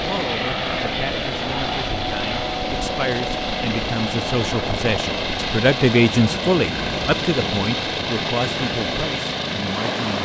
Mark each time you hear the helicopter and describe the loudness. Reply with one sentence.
You can hear the helicopter from 0.0 to 10.2 s, at a steady volume.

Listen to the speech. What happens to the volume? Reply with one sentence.
The volume of the speech goes up, then down.